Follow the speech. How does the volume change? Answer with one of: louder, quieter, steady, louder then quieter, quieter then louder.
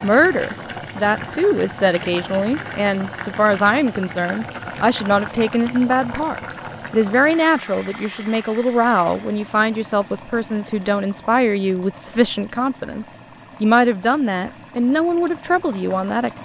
steady.